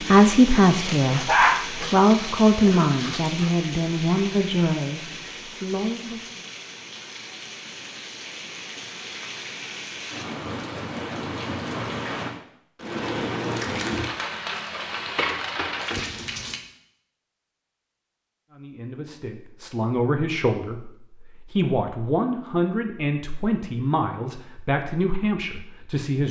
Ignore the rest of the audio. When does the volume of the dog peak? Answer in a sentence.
The volume of the dog peaks at 1 second.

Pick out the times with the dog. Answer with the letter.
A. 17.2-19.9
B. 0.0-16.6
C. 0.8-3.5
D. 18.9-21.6
C.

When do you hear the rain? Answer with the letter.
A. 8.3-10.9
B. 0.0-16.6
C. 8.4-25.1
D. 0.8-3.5
B.